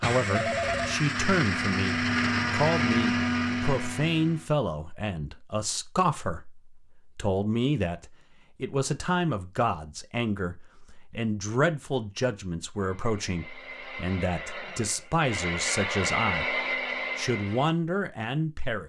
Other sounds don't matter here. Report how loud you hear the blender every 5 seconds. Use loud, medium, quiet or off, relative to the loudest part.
loud, off, quiet, loud.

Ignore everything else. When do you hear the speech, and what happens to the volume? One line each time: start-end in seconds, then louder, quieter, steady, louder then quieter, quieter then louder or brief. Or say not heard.
0.0-16.6 steady
17.1-18.8 brief.